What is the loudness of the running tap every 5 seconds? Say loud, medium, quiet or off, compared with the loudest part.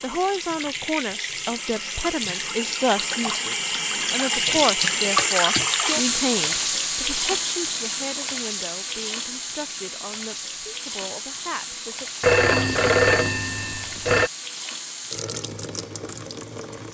loud, loud, medium, medium.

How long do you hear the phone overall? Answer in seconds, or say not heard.
2 s.